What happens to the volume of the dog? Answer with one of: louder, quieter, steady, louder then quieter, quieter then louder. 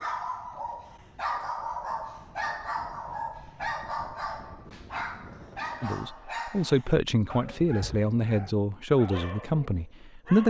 quieter.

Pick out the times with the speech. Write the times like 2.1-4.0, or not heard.
5.8-10.4.